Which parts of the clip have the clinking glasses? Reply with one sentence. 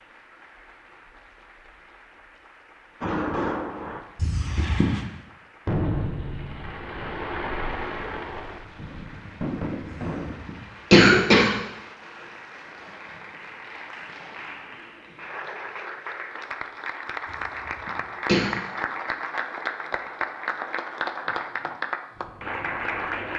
You can't hear the clinking glasses here.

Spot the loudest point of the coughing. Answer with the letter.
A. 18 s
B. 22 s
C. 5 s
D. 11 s
D.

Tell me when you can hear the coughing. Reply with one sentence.
The coughing can be heard from 4.2 to 4.9 s, from 9.9 to 11.5 s and from 17.3 to 18.4 s.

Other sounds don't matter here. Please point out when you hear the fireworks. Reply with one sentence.
The fireworks can be heard from 3.0 to 10.4 s.